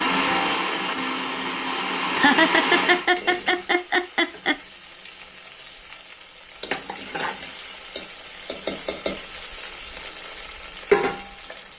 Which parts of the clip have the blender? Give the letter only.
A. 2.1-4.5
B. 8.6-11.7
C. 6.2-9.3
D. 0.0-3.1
D.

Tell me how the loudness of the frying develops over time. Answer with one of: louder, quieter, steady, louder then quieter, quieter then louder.
louder.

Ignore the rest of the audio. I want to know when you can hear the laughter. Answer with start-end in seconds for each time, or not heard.
2.1-4.5.